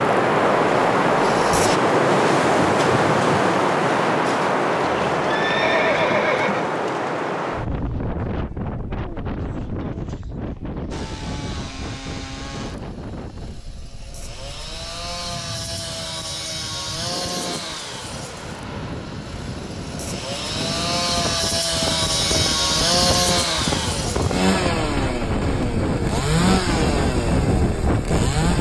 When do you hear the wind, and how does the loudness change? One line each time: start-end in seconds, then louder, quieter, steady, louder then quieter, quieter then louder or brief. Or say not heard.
0.0-28.5 quieter then louder.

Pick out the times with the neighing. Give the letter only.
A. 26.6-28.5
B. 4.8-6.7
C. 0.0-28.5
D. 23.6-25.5
B.